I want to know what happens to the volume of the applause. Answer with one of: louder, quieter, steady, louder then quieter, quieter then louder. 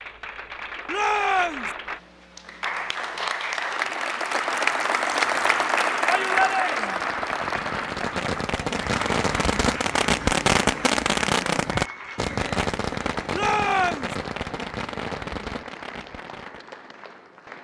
louder then quieter.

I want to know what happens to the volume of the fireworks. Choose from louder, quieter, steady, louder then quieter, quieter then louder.
louder then quieter.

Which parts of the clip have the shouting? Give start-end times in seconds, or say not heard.
0.8-1.7, 6.0-7.0, 13.3-14.2.